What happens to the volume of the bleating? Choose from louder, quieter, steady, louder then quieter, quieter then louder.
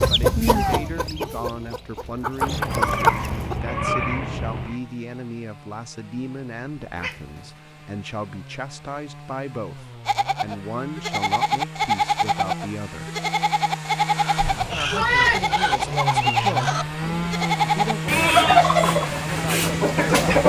steady.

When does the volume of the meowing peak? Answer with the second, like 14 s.
15 s.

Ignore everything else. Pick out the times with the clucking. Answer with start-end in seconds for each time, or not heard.
0.0-3.5, 14.2-20.4.